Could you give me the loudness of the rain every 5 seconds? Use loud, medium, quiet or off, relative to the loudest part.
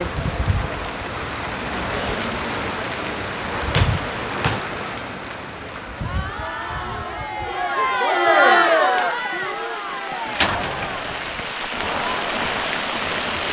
loud, medium, loud.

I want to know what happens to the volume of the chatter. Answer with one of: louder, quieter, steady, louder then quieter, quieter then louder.
louder then quieter.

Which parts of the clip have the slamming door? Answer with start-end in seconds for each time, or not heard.
3.7-4.6, 10.3-11.5.